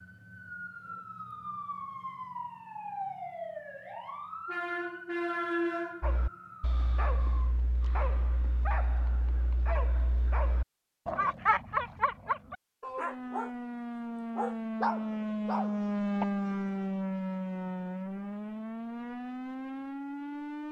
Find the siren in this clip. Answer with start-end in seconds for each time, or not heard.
0.0-7.5, 13.0-20.6.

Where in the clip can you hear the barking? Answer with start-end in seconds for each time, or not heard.
6.0-16.2.